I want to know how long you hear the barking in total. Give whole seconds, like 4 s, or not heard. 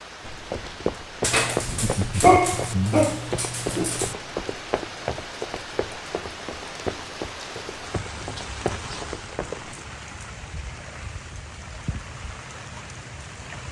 3 s.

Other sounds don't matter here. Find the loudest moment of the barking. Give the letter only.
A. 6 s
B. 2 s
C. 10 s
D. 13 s
B.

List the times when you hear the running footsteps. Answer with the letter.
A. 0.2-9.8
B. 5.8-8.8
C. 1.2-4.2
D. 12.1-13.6
A.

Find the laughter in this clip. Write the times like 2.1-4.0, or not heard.
1.6-3.2.